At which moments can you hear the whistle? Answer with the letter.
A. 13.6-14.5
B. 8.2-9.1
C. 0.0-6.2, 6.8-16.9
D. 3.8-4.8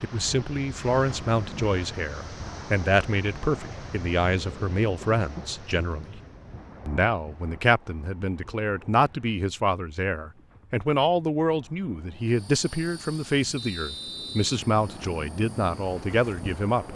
A.